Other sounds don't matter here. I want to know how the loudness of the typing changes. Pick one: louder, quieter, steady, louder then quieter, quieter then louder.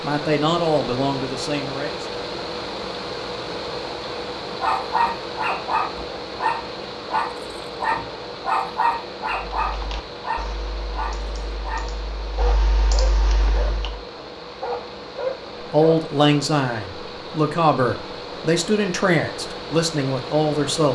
louder.